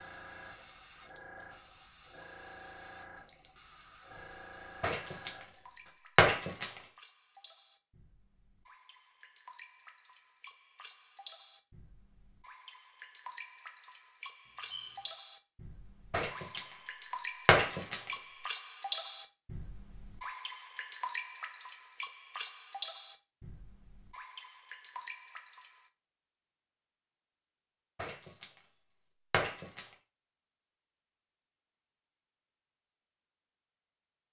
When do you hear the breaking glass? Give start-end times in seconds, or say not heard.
4.8-6.8, 16.1-18.1, 27.9-29.9.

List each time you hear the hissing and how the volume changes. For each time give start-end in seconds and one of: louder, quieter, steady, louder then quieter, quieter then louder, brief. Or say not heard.
0.0-6.0 steady.